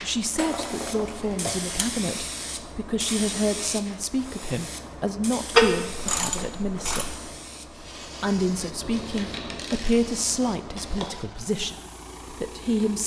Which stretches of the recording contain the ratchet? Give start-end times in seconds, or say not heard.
0.3-1.9, 5.5-7.2, 8.8-11.1.